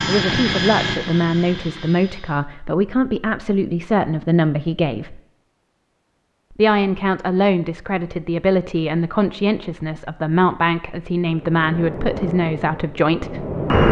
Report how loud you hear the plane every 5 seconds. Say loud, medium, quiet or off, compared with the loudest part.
loud, off, loud.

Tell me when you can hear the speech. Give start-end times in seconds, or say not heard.
0.0-5.2, 6.5-13.4.